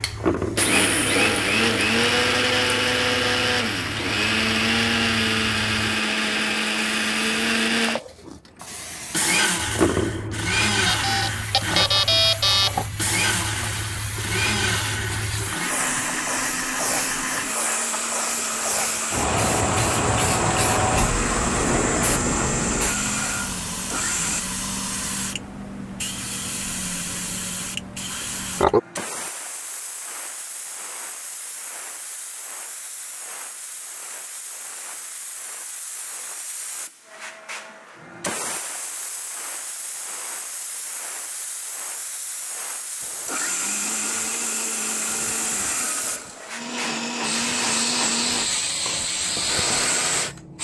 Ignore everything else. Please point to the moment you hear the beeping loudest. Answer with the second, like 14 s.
12 s.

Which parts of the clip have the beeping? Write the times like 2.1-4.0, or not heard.
10.8-12.8.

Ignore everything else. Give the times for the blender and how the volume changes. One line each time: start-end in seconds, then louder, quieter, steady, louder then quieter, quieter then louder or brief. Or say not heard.
0.0-24.4 quieter
43.0-50.4 steady.